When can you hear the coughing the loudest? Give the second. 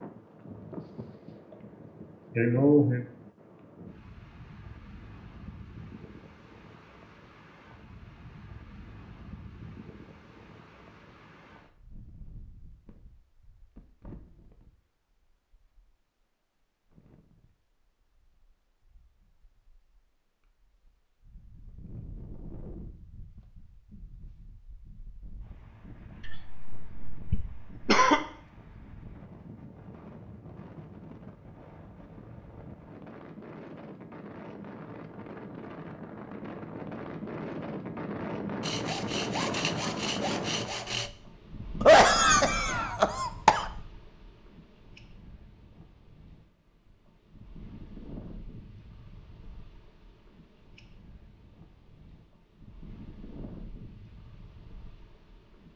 42 s.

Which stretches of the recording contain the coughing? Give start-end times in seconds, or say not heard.
2.4-3.0, 26.2-28.2, 41.8-43.6.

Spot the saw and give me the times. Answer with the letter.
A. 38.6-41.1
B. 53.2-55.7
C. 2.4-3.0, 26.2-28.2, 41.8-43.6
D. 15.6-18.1
A.